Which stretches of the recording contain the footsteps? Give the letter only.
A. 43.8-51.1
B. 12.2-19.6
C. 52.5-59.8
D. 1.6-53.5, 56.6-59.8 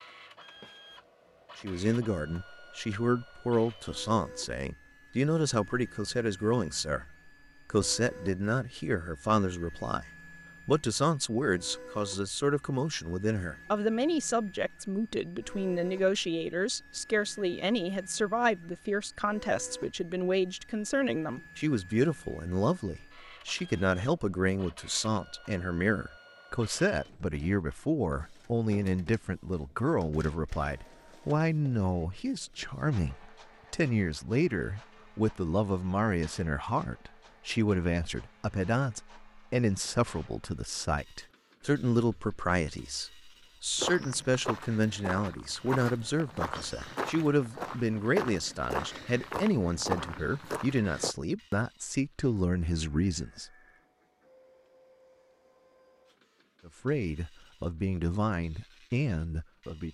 A.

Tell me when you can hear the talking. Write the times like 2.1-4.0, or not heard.
1.6-53.5, 56.6-59.8.